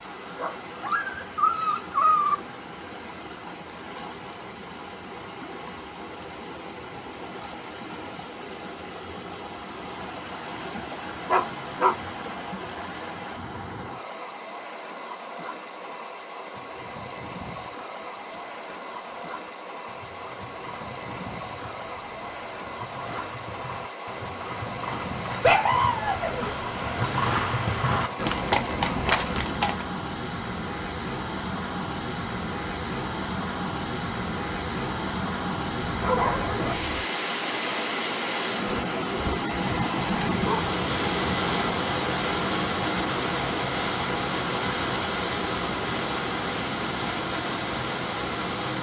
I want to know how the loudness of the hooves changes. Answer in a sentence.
The loudness of the hooves goes up.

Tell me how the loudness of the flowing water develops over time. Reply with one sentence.
The volume of the flowing water goes up.